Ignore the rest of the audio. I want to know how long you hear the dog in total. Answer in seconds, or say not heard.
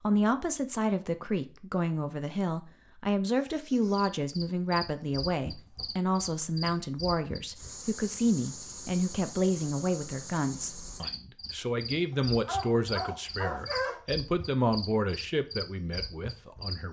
2 s.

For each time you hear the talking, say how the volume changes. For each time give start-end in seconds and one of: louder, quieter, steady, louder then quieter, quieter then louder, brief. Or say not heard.
0.0-16.8 steady.